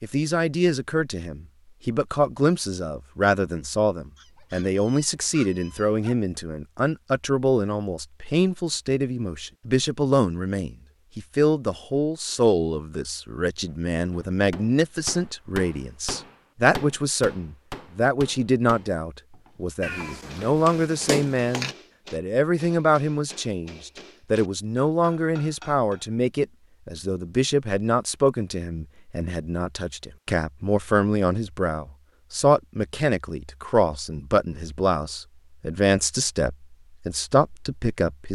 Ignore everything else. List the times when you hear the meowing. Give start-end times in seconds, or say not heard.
19.8-21.8.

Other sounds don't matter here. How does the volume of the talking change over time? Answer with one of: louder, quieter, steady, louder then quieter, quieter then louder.
steady.